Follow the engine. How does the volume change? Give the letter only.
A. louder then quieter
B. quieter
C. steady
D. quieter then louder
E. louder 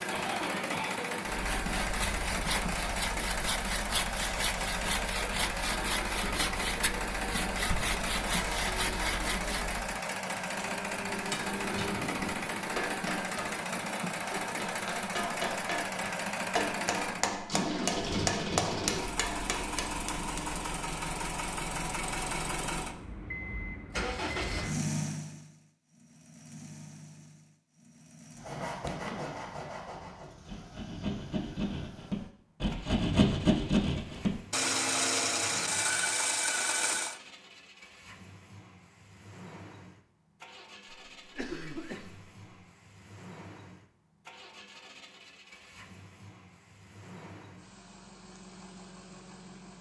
B.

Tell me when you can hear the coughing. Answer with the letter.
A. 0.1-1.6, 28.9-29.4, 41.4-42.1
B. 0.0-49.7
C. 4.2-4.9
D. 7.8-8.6
A.